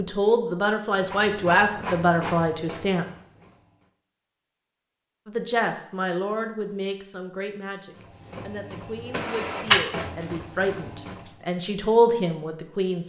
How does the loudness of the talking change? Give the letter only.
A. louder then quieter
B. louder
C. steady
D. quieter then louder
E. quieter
D.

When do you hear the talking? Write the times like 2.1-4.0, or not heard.
0.0-3.0, 5.2-13.0.